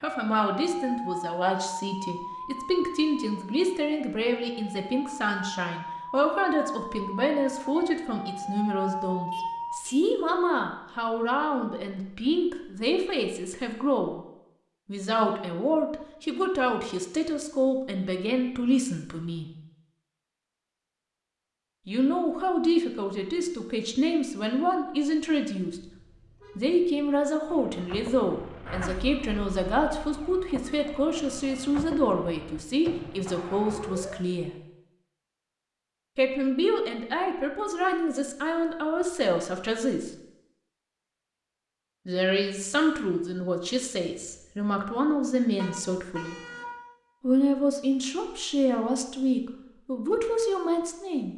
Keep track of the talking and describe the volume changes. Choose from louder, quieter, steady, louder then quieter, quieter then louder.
steady.